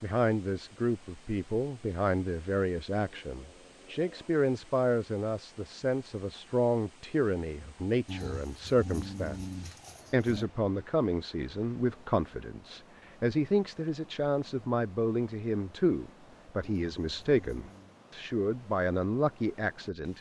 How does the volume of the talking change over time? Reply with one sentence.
The volume of the talking stays about the same.